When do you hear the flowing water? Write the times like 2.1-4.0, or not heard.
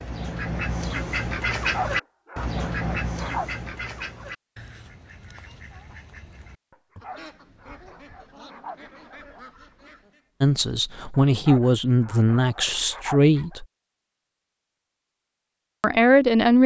not heard.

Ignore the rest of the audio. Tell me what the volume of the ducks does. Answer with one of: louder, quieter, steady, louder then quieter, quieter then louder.
quieter.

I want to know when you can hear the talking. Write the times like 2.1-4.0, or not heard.
10.4-13.7, 15.8-16.6.